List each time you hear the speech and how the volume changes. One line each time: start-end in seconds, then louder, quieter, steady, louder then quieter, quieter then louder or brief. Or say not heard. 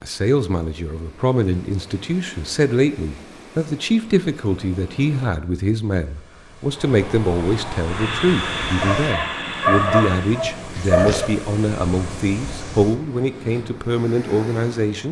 0.0-15.0 steady.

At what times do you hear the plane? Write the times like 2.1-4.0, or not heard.
6.6-10.4.